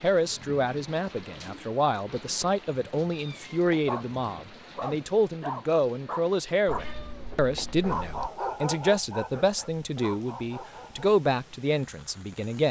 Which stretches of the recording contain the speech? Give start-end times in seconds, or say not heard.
0.0-12.6.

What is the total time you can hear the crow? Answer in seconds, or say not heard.
not heard.